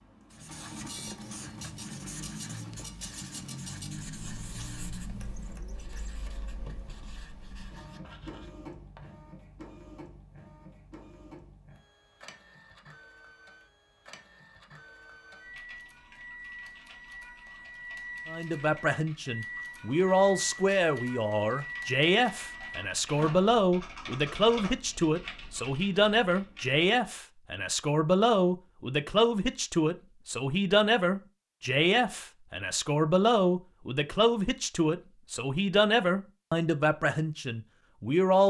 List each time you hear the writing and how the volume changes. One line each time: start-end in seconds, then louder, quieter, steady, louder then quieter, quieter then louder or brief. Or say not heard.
0.3-9.2 quieter.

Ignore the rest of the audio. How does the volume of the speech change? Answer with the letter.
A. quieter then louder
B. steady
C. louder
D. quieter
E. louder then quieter
B.